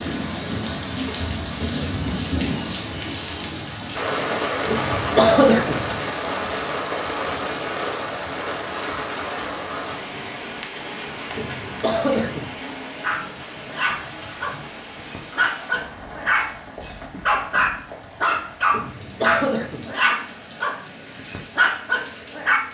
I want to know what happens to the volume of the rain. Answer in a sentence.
The volume of the rain goes down.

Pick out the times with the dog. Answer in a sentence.
You can hear the dog from 13.0 to 22.6 s.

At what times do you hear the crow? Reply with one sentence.
You can't hear the crow here.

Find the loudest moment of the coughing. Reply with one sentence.
The loudest moment of the coughing is at 5 seconds.